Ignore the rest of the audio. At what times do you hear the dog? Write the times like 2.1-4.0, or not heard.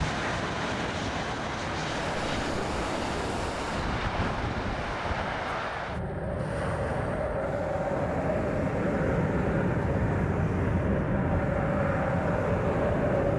not heard.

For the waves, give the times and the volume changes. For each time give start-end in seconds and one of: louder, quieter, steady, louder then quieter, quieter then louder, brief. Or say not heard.
0.0-13.3 quieter.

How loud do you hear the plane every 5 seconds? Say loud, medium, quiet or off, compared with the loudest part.
medium, loud, loud.